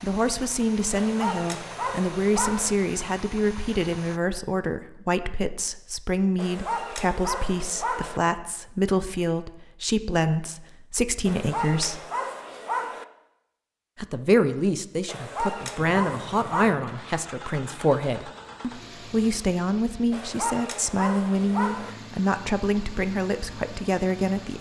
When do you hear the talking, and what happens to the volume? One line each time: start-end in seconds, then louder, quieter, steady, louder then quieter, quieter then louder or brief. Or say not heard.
0.0-12.1 steady
13.9-24.5 steady.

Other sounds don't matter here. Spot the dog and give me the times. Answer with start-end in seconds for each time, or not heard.
0.9-2.8, 6.3-8.2, 11.2-13.1, 15.1-16.8, 20.1-21.9.